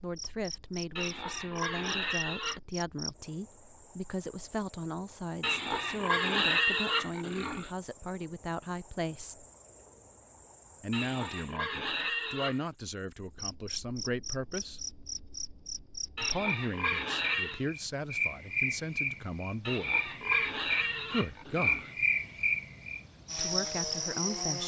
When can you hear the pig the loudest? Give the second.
7 s.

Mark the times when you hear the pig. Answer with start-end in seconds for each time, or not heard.
0.9-2.6, 5.4-7.7, 10.9-12.7, 16.1-17.6, 19.6-21.9.